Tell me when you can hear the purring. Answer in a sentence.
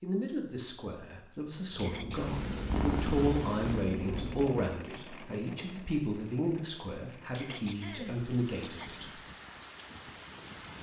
The purring can be heard from 1.9 to 4.5 s.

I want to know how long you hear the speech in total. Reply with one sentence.
You can hear the speech for 9 seconds altogether.